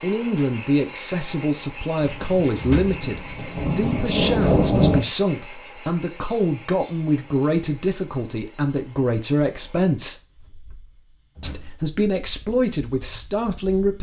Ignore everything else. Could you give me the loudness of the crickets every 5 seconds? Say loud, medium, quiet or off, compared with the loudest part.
loud, medium, quiet.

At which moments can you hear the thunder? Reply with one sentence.
The thunder can be heard from 2.0 to 5.0 s.